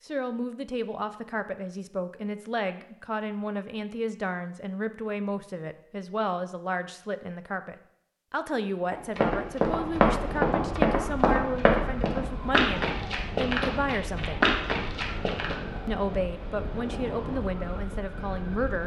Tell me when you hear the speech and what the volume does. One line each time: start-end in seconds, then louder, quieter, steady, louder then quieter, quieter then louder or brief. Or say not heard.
0.1-14.4 steady
15.8-18.8 brief.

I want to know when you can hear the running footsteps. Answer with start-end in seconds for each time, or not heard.
8.9-15.6.